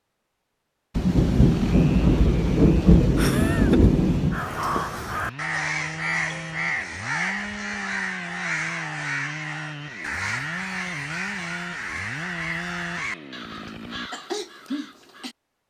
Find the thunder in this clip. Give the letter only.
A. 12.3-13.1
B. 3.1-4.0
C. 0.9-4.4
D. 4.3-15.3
C.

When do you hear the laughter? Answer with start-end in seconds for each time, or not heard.
3.1-4.0.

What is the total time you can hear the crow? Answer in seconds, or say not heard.
11 s.